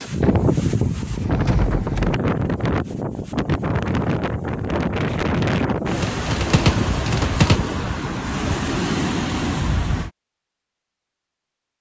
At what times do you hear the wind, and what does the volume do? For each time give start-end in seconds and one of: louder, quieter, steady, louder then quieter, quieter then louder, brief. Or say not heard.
0.0-10.1 steady.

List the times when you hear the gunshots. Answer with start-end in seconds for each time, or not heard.
6.0-7.6.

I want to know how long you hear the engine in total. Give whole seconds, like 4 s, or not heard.
2 s.